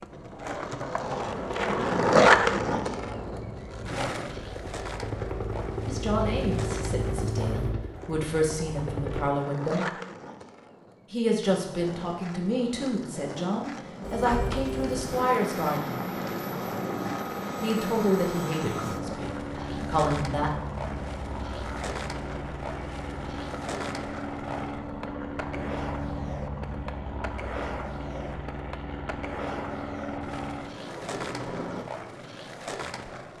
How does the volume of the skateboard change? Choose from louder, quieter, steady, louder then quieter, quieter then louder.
quieter.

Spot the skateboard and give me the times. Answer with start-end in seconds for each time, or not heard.
0.0-33.3.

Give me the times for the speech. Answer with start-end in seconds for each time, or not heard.
5.8-9.9, 11.1-16.0, 17.6-20.5.